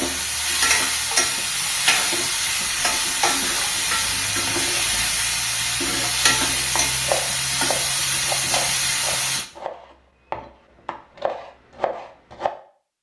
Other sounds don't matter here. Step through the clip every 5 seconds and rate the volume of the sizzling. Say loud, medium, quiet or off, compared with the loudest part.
loud, loud, off.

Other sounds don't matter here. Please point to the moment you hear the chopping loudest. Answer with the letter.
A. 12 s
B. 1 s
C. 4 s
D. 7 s
D.